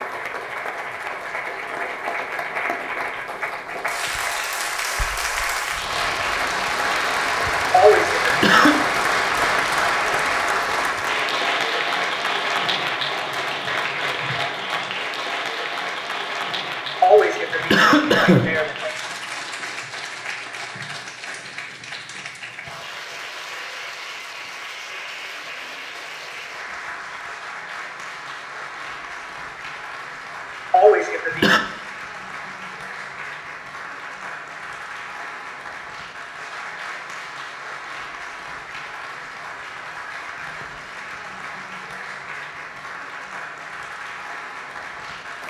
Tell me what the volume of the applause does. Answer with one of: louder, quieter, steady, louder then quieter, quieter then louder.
quieter.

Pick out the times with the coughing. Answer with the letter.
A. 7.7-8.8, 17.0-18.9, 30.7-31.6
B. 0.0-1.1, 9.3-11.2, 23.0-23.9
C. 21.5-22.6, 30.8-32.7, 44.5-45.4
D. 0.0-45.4
A.